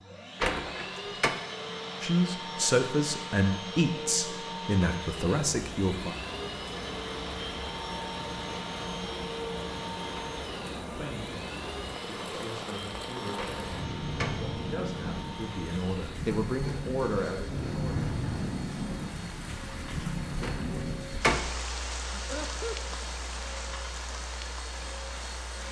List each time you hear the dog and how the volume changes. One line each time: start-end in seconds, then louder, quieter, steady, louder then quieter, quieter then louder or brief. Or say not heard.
not heard.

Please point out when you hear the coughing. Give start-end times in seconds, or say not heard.
22.1-22.9.